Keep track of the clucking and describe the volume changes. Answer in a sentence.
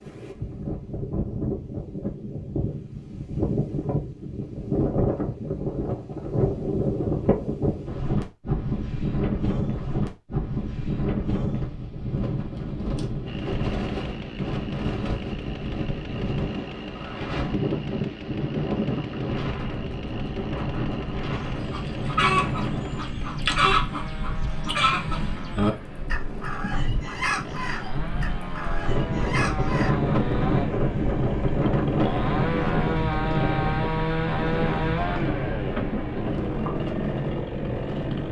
The volume of the clucking goes down.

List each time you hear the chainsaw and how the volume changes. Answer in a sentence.
You can hear the chainsaw from 13.2 to 38.2 s, getting louder.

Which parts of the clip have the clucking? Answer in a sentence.
You can hear the clucking from 21.3 to 29.9 s.